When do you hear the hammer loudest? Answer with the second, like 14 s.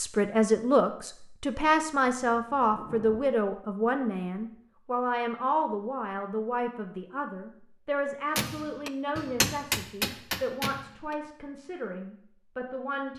10 s.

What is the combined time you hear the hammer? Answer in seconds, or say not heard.
3 s.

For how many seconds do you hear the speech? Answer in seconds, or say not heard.
13 s.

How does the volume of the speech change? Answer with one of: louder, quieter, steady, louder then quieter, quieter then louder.
quieter.